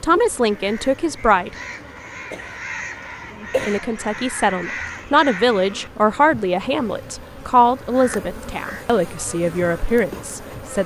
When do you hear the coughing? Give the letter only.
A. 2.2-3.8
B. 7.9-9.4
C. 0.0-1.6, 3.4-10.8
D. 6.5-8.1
A.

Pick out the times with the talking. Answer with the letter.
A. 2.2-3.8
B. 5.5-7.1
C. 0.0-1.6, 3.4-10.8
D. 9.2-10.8
C.